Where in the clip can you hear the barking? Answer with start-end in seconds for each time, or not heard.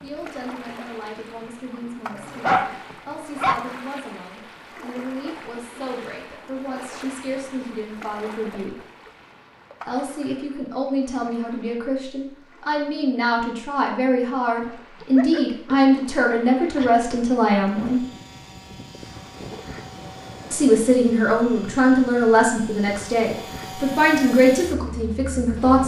2.1-3.6, 15.0-16.9.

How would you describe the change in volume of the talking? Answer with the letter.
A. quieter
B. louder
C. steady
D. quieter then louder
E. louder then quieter
B.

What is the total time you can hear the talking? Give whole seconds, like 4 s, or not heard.
22 s.